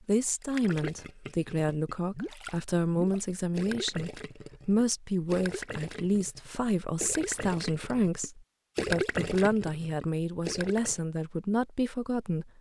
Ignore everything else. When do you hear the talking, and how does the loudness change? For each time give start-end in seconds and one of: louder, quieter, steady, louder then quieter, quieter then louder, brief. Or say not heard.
0.1-12.5 steady.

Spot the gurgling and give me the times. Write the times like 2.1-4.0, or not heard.
0.4-11.0.